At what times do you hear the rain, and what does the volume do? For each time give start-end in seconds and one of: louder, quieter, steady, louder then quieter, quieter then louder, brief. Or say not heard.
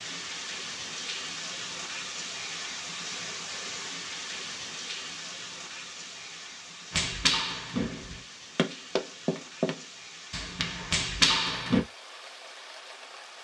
0.0-13.3 quieter.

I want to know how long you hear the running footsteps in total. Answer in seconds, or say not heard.
5 s.